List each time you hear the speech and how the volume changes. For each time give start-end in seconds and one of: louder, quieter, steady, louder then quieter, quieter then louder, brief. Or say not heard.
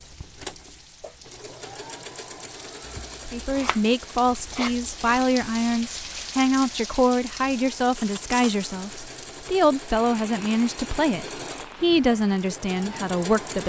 3.2-13.6 steady.